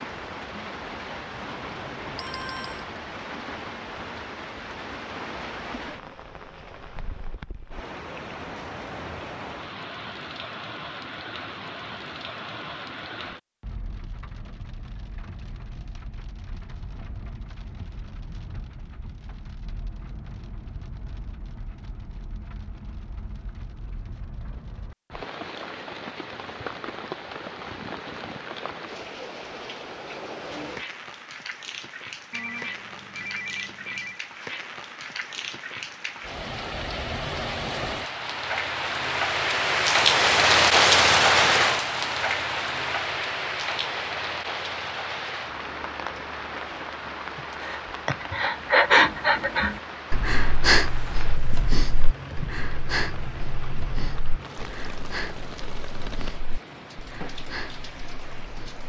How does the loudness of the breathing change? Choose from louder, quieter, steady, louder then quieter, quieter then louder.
quieter.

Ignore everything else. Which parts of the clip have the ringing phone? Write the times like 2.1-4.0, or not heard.
1.3-2.9, 32.3-34.2.